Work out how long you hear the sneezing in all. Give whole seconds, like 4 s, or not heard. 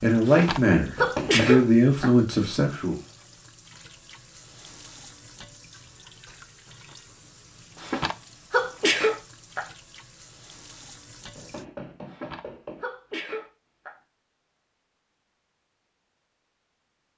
6 s.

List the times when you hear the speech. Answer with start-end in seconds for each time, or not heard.
0.0-3.0.